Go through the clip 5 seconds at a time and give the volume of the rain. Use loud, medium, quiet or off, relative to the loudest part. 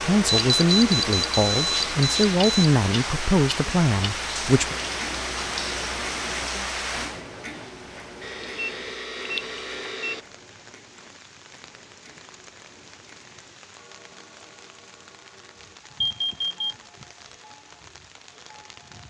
loud, loud, quiet, quiet.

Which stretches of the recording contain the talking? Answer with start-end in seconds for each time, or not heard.
0.0-4.8.